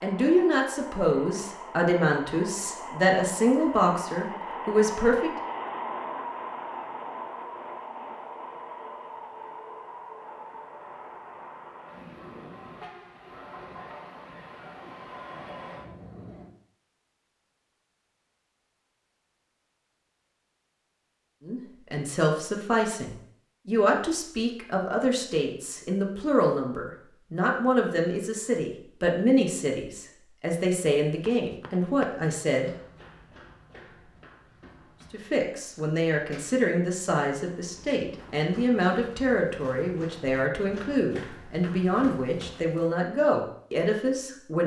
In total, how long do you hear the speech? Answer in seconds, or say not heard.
26 s.